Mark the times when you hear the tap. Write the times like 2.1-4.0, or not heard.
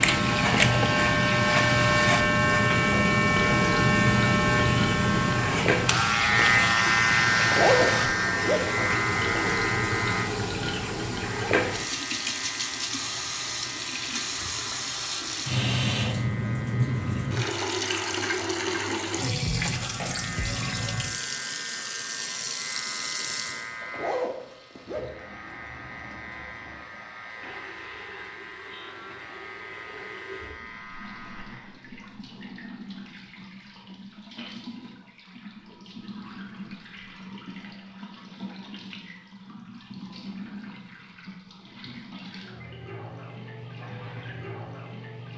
0.0-45.3.